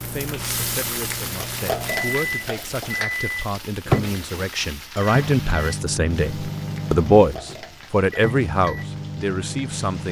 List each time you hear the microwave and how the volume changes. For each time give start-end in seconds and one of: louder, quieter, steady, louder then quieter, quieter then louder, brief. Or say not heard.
0.0-10.0 louder then quieter.